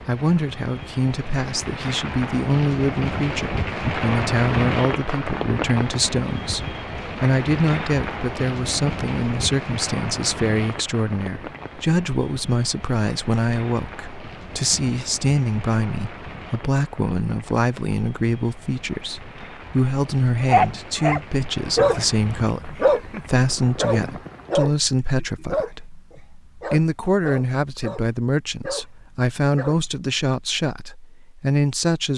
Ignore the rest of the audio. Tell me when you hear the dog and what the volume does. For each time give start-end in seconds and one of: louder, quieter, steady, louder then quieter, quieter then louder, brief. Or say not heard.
20.4-29.8 quieter.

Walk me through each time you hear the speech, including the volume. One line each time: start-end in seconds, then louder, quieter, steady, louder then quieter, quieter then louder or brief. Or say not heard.
0.1-32.1 steady.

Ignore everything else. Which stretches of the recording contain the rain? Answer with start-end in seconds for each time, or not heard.
0.0-24.7.